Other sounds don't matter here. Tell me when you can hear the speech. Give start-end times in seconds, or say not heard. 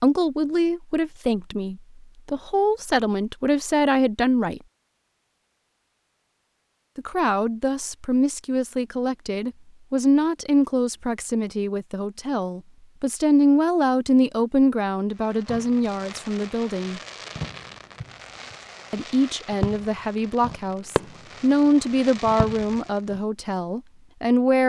0.0-4.6, 7.0-17.0, 18.9-24.6.